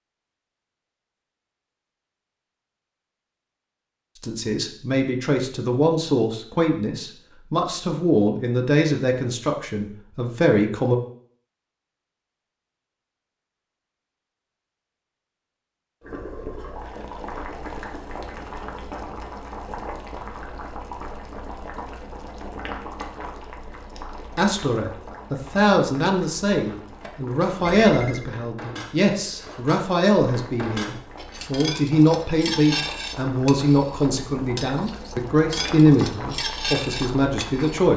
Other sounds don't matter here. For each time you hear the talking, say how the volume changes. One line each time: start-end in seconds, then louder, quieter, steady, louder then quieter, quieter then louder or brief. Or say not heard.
4.2-11.0 steady
24.4-37.9 steady.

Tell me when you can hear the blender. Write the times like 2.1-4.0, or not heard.
not heard.